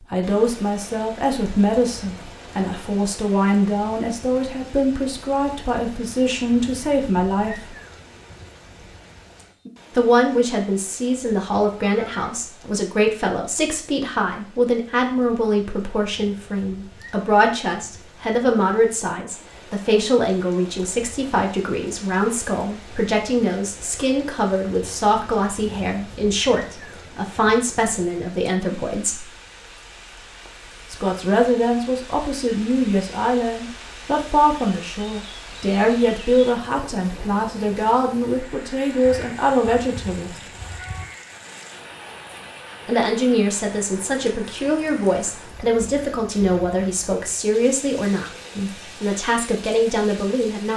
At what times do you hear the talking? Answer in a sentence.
The talking can be heard from 0.1 to 7.8 s, from 9.9 to 29.2 s, from 30.9 to 40.3 s and from 42.9 to 50.7 s.